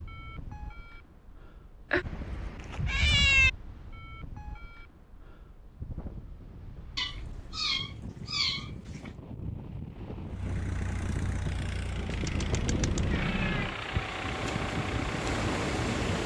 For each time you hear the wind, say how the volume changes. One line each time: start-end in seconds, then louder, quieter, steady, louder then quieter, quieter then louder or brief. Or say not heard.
0.0-16.2 louder.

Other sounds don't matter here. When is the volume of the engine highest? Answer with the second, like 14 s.
14 s.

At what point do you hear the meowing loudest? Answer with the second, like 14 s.
3 s.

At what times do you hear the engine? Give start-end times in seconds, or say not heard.
10.2-16.1.